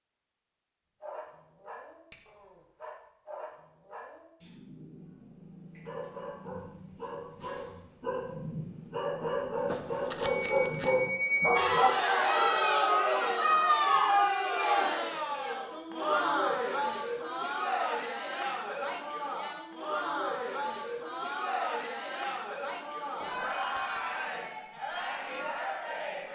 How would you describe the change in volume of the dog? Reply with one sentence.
The loudness of the dog goes up.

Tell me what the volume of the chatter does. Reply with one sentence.
The loudness of the chatter goes down.